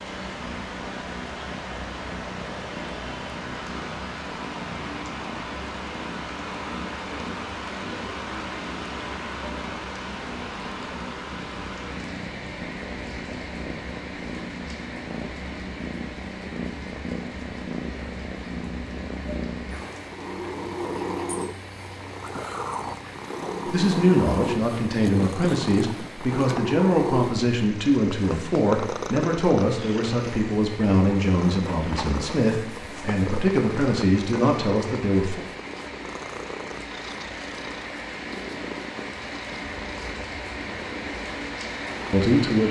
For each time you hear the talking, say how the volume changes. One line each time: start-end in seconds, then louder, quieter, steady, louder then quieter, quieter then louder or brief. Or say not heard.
23.6-35.5 steady
42.1-42.6 brief.